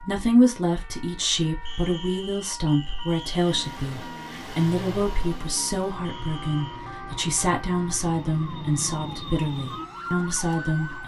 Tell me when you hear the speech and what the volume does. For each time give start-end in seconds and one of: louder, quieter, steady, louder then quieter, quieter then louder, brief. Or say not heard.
0.0-11.0 steady.